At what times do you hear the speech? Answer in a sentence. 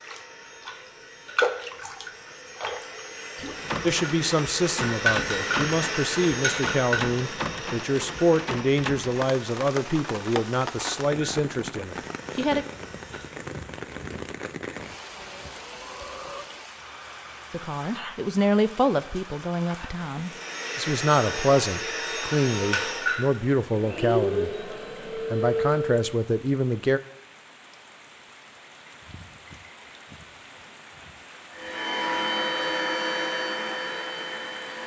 The speech can be heard from 3.8 to 12.7 s, from 17.5 to 24.5 s and from 25.3 to 27.0 s.